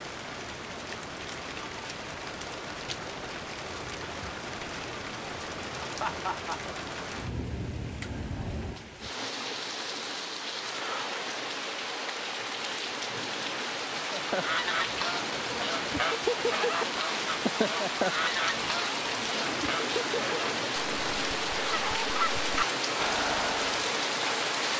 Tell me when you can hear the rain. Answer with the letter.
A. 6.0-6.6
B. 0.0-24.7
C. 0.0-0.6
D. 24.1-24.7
B.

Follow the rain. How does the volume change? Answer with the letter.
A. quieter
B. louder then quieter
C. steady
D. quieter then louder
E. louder
E.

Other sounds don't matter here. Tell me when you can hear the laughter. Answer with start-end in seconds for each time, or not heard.
6.0-6.6.